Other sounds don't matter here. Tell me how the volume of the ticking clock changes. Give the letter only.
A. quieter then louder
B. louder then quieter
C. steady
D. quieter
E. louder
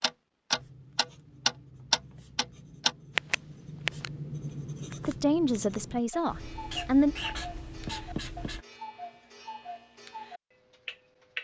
A.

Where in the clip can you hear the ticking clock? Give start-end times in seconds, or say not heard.
0.0-4.1, 4.9-11.3.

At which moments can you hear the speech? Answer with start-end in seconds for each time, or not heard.
5.0-7.2.